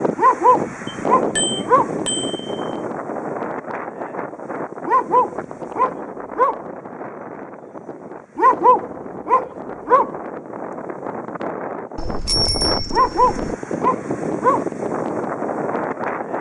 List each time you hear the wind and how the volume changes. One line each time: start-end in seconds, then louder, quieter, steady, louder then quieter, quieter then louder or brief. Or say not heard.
0.0-16.3 quieter then louder.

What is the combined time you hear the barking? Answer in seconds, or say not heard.
7 s.